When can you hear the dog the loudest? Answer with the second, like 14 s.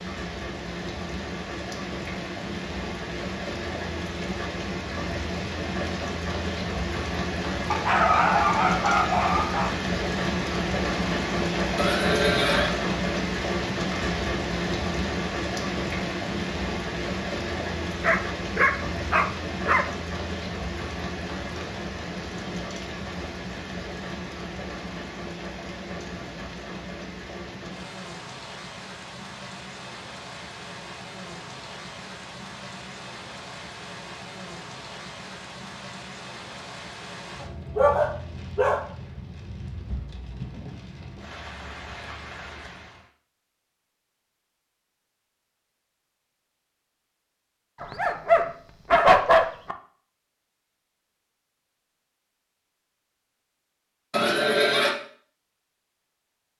49 s.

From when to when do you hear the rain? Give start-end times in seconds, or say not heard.
0.0-43.1.